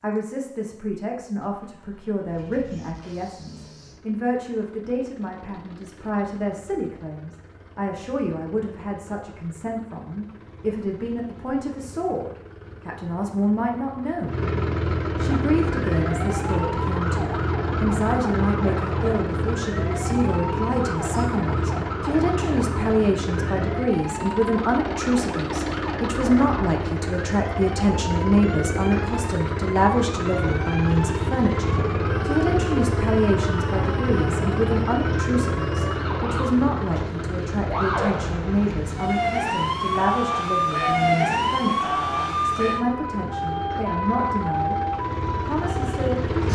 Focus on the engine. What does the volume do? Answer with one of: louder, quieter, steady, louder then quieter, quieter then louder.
louder then quieter.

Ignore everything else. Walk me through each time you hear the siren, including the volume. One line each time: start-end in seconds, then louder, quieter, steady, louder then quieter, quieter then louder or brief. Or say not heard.
15.2-46.5 louder.